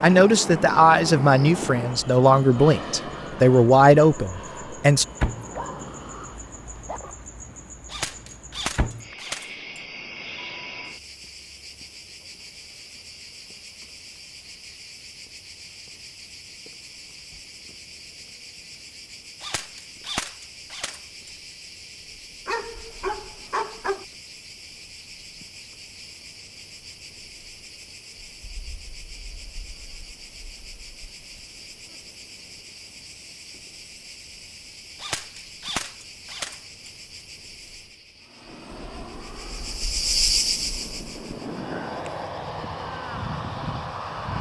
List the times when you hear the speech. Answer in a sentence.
The speech can be heard from 0.0 to 5.0 s.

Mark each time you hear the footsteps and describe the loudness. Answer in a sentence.
You can't hear the footsteps here.